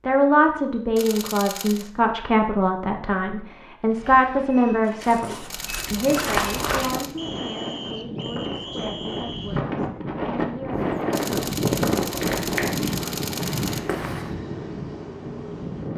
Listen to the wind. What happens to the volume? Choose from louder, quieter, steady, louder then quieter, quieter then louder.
louder then quieter.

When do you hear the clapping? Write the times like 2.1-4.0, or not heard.
not heard.